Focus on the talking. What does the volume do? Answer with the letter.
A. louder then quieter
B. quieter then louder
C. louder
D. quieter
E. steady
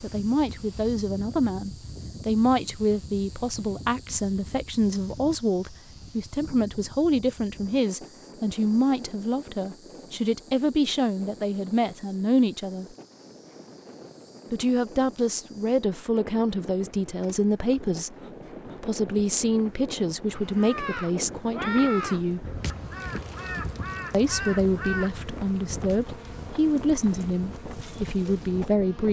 E.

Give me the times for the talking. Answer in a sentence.
You can hear the talking from 0.0 to 12.9 s, from 14.5 to 18.1 s, from 18.8 to 22.6 s and from 24.1 to 29.0 s.